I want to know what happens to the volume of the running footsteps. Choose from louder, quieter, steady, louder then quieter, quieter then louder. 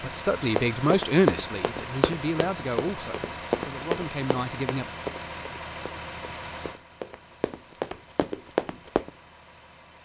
quieter then louder.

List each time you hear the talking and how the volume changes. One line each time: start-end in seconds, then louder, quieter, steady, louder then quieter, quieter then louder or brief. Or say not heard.
0.0-4.8 quieter.